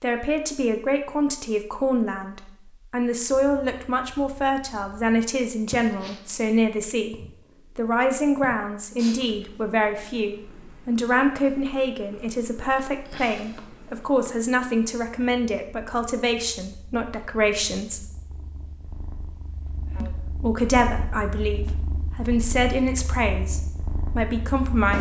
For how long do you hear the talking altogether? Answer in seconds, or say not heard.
23 s.